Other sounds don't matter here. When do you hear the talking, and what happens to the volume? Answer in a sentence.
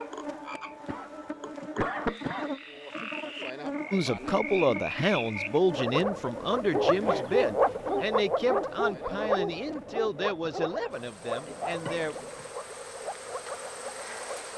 The talking can be heard from 3.9 to 12.2 s, getting quieter.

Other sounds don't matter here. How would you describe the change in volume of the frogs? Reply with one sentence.
The volume of the frogs goes up, then down.